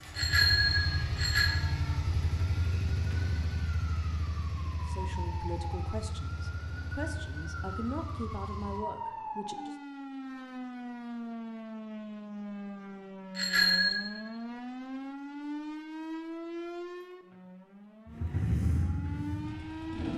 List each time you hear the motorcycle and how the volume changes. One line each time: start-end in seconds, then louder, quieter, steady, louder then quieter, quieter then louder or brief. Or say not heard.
0.0-8.8 quieter
18.1-20.1 brief.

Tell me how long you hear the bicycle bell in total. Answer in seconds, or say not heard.
2 s.